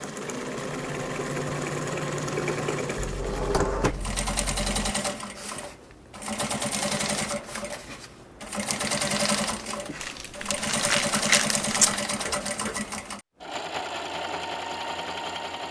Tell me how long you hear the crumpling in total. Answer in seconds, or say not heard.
2 s.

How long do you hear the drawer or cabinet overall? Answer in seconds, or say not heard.
2 s.